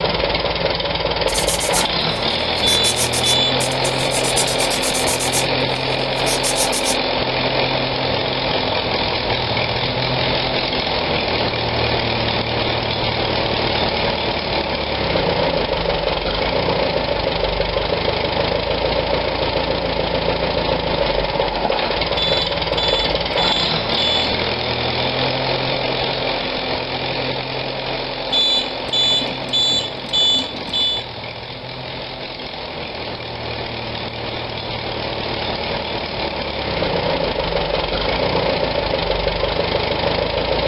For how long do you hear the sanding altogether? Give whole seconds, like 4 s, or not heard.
6 s.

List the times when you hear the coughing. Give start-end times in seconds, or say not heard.
not heard.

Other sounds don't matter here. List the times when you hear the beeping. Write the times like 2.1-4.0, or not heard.
2.6-3.7, 22.1-24.4, 28.3-31.1.